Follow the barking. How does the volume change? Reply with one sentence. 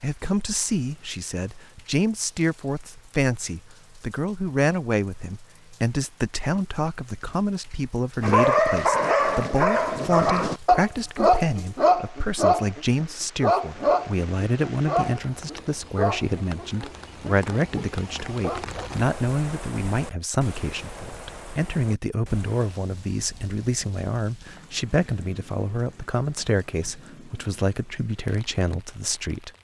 The loudness of the barking goes down.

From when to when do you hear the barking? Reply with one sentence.
The barking can be heard from 8.2 to 18.9 s.